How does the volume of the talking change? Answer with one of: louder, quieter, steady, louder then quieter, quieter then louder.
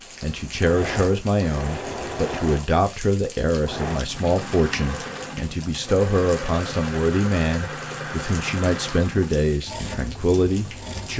steady.